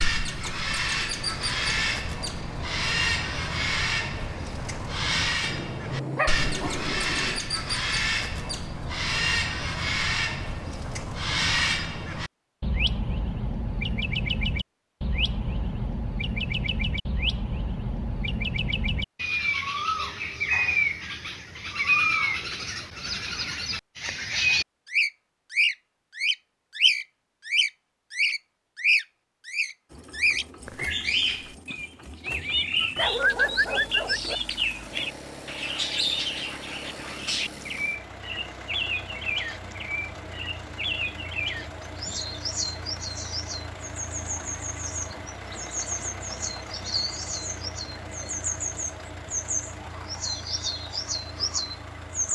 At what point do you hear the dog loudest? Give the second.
33 s.